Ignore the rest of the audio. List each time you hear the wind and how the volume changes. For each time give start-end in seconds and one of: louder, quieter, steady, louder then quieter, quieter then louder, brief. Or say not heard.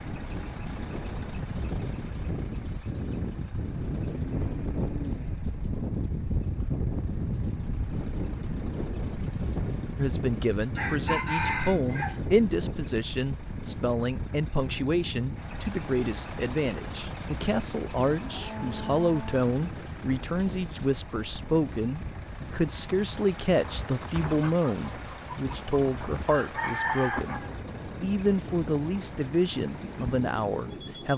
0.0-31.1 quieter.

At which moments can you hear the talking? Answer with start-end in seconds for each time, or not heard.
9.9-27.4, 28.0-31.1.